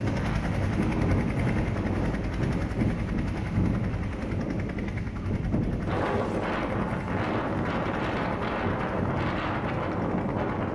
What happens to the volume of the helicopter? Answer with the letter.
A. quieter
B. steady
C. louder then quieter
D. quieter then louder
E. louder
A.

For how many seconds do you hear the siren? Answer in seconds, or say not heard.
not heard.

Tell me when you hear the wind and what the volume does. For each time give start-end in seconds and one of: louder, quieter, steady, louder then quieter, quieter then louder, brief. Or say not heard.
0.0-10.7 steady.